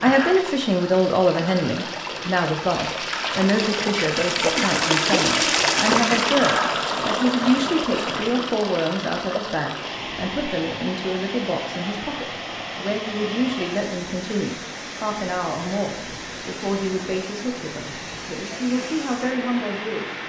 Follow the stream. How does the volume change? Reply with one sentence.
The volume of the stream goes up, then down.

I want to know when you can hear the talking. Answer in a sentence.
You can hear the talking from 0.0 to 20.1 s.